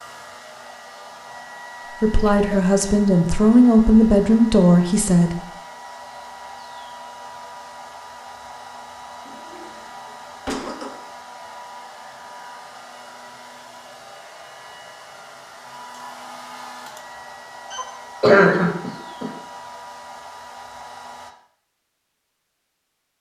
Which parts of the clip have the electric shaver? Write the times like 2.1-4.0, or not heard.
not heard.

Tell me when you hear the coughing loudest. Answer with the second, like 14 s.
18 s.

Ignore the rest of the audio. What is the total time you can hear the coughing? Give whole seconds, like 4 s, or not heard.
4 s.